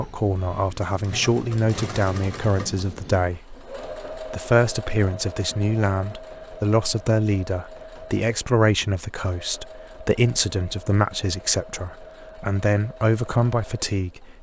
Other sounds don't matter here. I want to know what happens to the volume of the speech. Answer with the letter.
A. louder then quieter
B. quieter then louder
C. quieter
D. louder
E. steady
E.